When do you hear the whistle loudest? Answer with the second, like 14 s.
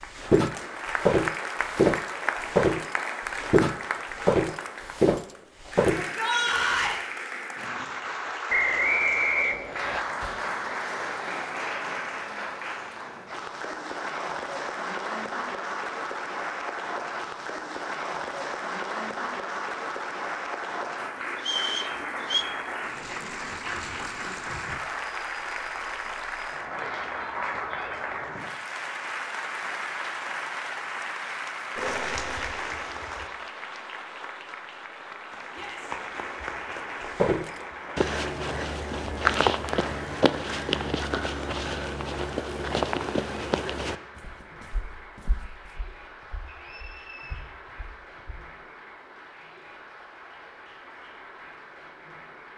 9 s.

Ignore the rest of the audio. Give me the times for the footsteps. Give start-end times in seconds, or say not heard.
0.1-6.2, 37.1-48.5.